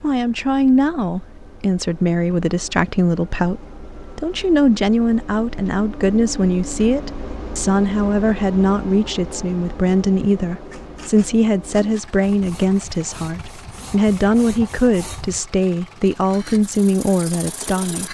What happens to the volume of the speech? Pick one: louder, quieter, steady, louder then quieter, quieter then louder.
steady.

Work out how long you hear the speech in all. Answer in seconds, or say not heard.
18 s.